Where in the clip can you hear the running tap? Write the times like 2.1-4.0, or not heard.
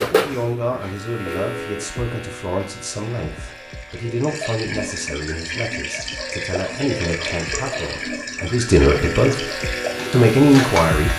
2.9-11.1.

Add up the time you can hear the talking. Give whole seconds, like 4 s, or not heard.
11 s.